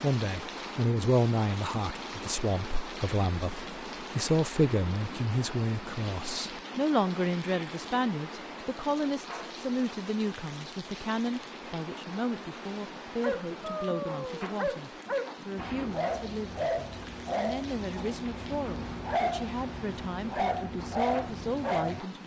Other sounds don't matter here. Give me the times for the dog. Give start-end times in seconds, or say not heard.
13.2-22.0.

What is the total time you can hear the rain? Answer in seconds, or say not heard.
22 s.